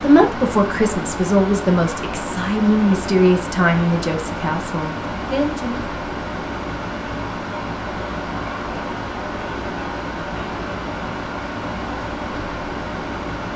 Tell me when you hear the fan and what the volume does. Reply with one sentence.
The fan can be heard from 0.0 to 13.5 s, at a steady volume.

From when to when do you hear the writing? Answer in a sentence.
You can't hear the writing here.